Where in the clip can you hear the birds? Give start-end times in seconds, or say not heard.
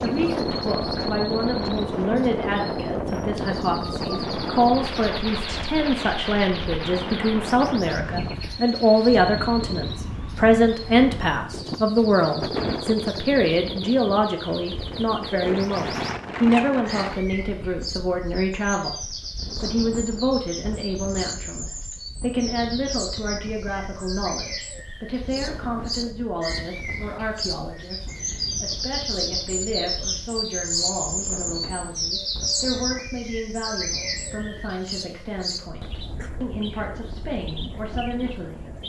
0.0-38.8.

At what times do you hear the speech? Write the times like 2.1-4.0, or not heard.
0.0-38.8.